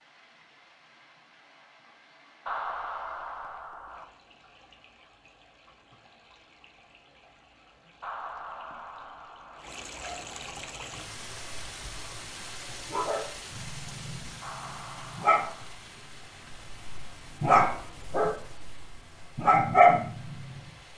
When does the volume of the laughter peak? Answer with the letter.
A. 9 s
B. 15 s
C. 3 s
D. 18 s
C.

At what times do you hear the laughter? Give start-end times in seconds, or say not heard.
2.5-4.0, 8.0-9.7, 14.4-15.8.